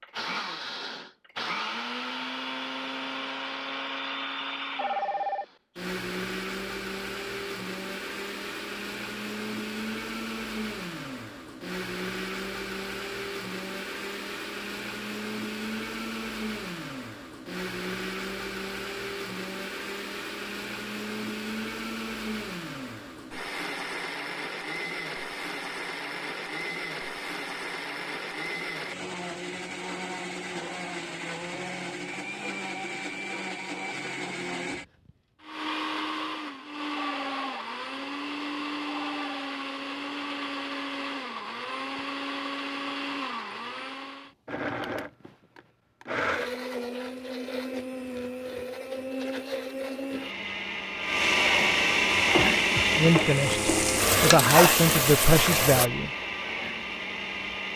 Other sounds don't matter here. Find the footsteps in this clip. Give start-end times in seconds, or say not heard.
not heard.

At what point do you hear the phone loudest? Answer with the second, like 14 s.
5 s.